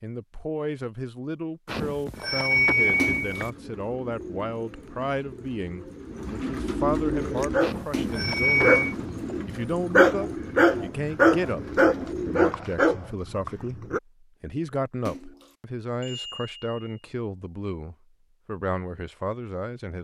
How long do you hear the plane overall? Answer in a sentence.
You can't hear the plane here.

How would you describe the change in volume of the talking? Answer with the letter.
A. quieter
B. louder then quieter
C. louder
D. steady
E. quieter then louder
D.